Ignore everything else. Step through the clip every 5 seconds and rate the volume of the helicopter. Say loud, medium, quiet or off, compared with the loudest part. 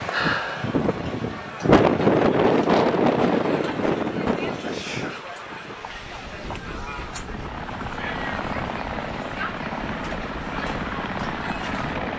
off, loud, loud.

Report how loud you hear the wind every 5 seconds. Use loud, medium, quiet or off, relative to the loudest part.
loud, quiet, quiet.